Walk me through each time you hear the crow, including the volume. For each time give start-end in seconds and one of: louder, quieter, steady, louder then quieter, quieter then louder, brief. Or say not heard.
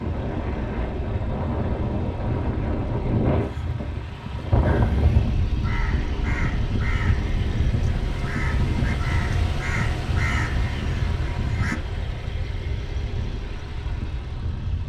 4.6-11.8 louder.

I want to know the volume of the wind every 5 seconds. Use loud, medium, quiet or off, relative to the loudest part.
loud, loud, medium.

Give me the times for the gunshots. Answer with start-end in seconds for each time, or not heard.
not heard.